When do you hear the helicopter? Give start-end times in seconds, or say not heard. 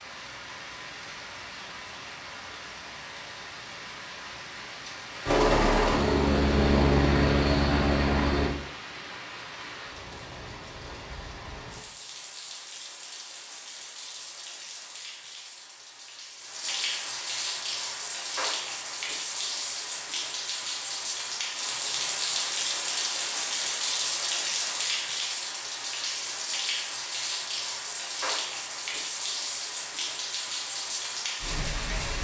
5.2-8.5.